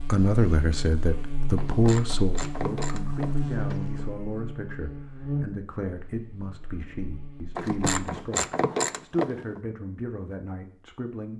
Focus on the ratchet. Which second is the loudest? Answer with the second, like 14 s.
9 s.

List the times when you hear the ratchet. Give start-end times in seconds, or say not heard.
1.6-4.1, 7.5-9.6.